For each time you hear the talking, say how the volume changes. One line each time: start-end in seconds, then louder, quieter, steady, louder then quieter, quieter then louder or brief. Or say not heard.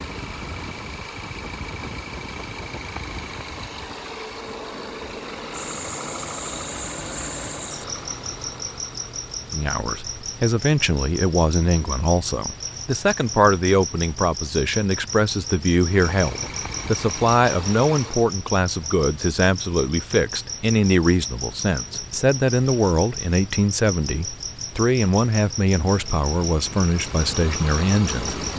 9.5-28.4 steady.